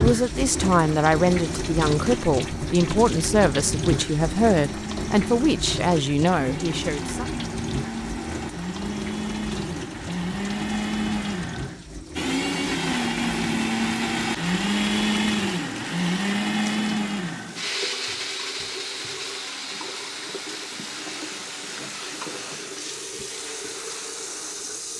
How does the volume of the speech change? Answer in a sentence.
The volume of the speech stays about the same.